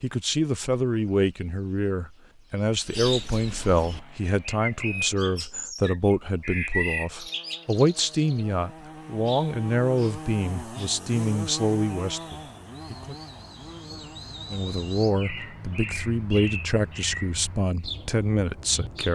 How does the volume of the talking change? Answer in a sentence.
The volume of the talking stays about the same.